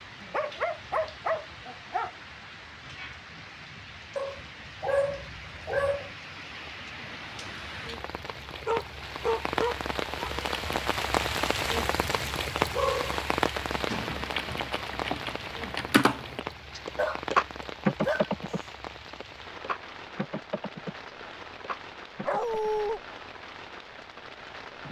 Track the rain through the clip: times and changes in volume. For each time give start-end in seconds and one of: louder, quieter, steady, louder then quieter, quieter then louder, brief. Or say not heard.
0.0-24.8 louder then quieter.